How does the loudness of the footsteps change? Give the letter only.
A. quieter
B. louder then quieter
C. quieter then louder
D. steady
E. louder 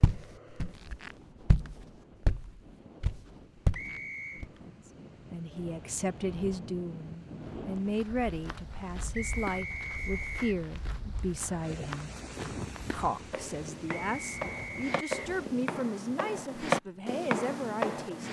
C.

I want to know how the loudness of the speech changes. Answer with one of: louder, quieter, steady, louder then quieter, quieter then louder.
steady.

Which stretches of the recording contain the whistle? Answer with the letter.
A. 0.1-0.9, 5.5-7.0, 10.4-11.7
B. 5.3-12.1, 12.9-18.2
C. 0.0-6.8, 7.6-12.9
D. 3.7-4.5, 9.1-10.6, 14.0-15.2
D.